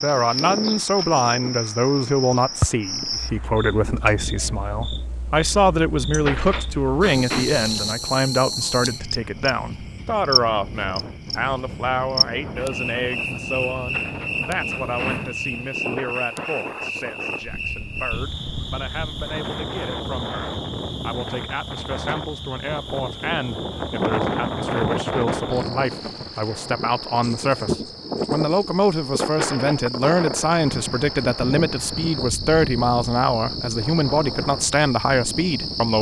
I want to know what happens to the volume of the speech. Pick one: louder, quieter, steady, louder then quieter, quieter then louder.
quieter then louder.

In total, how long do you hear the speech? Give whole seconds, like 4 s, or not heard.
36 s.